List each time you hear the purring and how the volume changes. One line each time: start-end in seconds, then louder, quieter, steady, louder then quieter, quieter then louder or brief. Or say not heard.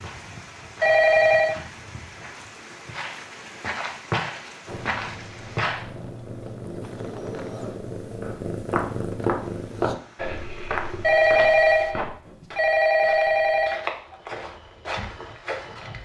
4.7-9.9 louder.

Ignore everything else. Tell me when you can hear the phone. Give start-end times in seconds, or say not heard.
0.8-1.6, 11.0-13.8.